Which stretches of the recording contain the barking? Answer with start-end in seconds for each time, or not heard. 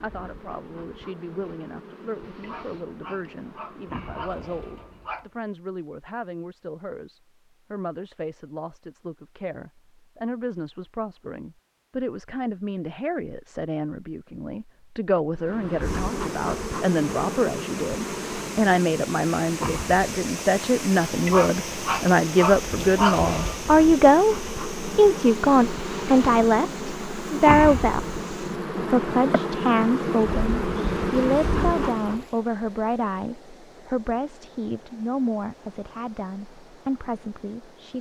2.4-5.2, 21.2-23.6.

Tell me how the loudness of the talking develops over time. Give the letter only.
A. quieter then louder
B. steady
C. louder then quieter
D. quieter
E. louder
C.